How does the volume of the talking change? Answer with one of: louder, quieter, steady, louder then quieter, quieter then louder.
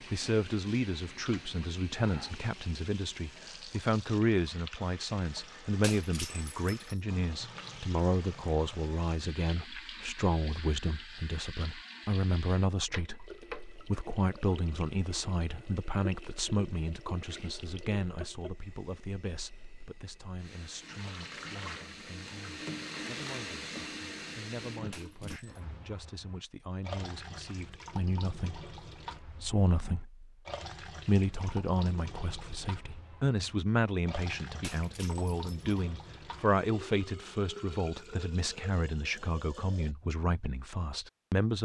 quieter then louder.